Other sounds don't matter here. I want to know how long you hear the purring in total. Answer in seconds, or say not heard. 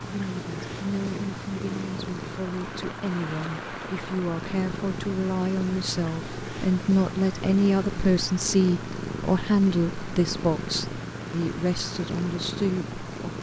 13 s.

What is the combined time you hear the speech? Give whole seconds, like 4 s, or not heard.
13 s.